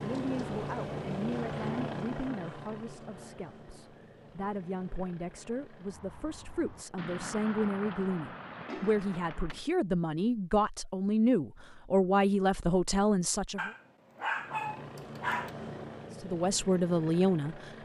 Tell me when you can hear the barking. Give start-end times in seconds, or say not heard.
13.6-15.5.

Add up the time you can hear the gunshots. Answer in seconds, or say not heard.
3 s.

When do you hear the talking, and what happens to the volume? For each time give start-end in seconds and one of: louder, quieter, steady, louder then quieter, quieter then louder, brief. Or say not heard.
0.0-13.7 louder
16.2-17.8 brief.